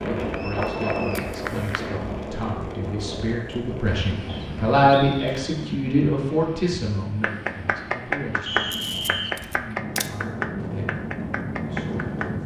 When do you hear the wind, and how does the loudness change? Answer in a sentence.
The wind can be heard from 0.0 to 12.4 s, getting quieter then louder.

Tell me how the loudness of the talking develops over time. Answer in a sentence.
The volume of the talking goes up, then down.